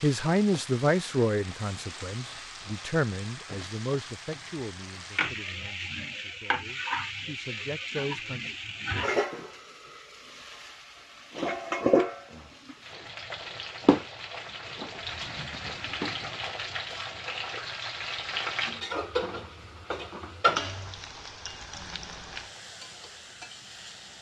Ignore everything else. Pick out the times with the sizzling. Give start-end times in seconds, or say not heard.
0.0-24.1.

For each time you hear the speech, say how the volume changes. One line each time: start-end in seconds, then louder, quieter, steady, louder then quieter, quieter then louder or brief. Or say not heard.
0.0-8.4 quieter then louder.